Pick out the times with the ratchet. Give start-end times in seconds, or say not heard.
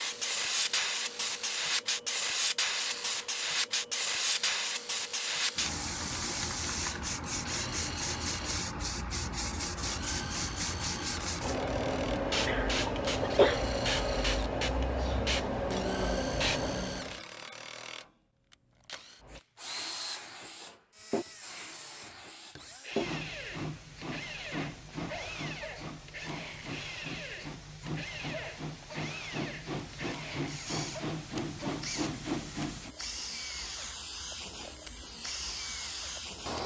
not heard.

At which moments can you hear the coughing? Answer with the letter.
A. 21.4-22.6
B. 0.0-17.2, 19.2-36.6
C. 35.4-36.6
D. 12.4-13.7
D.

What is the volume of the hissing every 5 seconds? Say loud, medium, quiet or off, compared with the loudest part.
loud, loud, loud, loud, medium, medium, medium, medium.